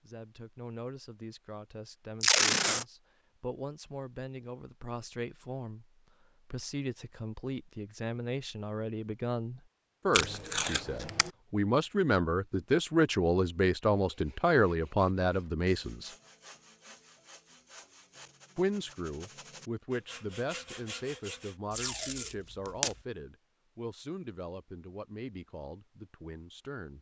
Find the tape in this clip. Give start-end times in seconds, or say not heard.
2.2-2.9, 10.1-11.3, 21.7-22.9.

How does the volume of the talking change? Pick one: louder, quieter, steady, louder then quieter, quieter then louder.
louder then quieter.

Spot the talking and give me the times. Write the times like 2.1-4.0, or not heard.
0.0-16.1, 18.6-26.9.